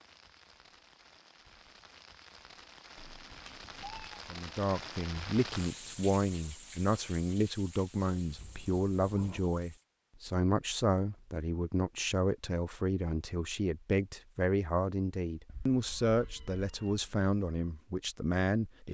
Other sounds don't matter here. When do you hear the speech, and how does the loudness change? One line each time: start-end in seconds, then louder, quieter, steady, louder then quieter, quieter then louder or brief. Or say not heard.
4.2-18.8 steady.